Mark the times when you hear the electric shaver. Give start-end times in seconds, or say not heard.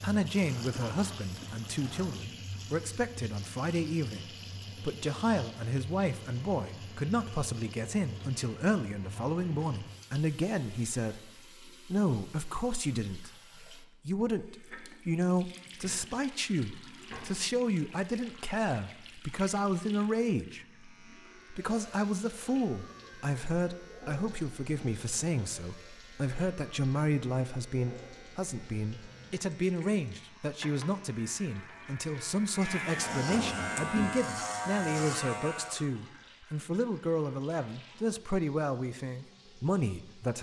20.5-35.9.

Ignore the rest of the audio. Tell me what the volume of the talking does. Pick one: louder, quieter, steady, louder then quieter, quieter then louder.
steady.